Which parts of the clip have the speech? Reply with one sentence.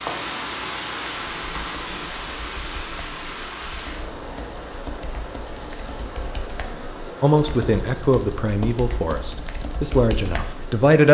You can hear the speech from 7.2 to 11.0 s.